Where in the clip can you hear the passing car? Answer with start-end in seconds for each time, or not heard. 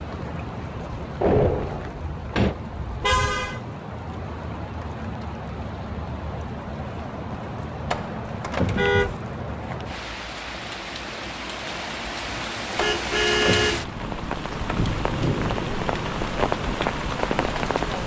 not heard.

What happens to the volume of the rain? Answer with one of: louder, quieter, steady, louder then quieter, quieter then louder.
louder.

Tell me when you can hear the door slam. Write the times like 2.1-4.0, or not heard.
1.2-2.5, 7.9-8.9, 12.8-13.8.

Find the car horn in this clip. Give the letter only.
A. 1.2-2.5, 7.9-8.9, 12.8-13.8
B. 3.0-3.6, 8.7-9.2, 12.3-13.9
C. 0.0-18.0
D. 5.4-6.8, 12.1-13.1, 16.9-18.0
B.